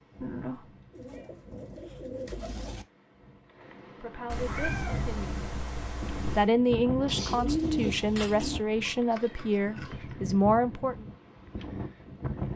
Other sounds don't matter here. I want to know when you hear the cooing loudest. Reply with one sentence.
The volume of the cooing peaks at 8 seconds.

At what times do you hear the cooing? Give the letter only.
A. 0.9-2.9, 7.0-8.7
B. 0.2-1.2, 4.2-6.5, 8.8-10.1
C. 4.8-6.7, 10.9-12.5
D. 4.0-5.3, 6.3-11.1
A.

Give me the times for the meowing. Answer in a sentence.
You can hear the meowing from 0.2 to 1.2 s, from 4.2 to 6.5 s and from 8.8 to 10.1 s.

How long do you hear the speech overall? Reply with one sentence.
The speech can be heard for 6 seconds in total.